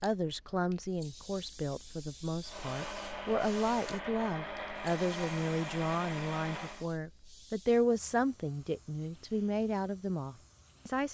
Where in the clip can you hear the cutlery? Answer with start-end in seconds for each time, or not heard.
not heard.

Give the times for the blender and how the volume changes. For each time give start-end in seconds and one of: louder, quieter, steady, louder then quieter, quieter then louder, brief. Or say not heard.
2.4-6.8 steady.